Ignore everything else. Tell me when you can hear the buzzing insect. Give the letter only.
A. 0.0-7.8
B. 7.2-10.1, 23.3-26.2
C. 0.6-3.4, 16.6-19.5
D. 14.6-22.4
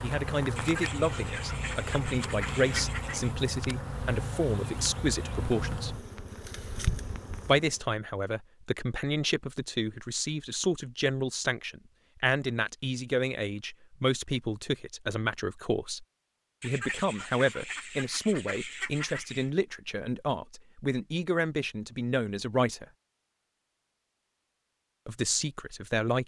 A.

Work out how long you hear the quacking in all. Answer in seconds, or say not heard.
6 s.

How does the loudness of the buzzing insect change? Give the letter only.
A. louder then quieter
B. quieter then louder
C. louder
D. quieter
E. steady
E.